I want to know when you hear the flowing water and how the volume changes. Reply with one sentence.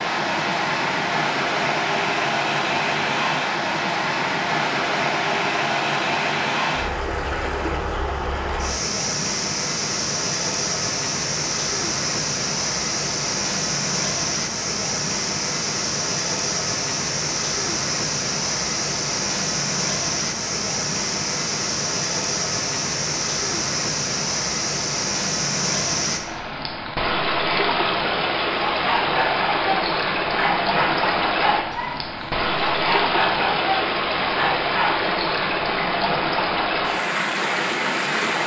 The flowing water can be heard from 0.0 to 38.4 s, at a steady volume.